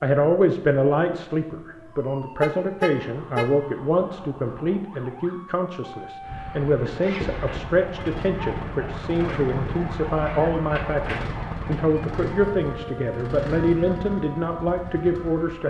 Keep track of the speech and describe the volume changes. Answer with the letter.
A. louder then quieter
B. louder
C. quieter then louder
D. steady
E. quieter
D.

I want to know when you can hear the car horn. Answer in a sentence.
You can hear the car horn from 2.4 to 3.5 s.